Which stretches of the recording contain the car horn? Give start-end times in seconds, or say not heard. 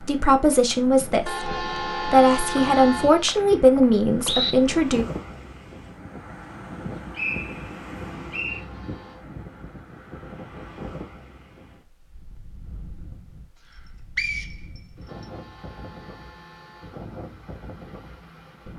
1.2-3.2, 8.4-9.2, 15.1-17.1.